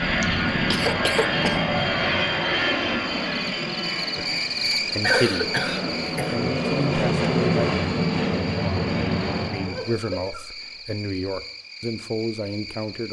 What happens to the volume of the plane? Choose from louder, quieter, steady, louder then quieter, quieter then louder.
quieter then louder.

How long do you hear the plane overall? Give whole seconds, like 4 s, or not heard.
10 s.